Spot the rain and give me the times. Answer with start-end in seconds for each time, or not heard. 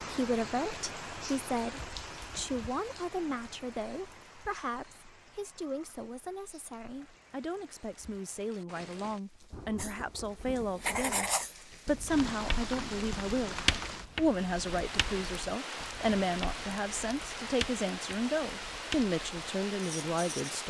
0.0-20.6.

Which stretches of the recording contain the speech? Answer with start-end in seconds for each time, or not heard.
0.0-20.6.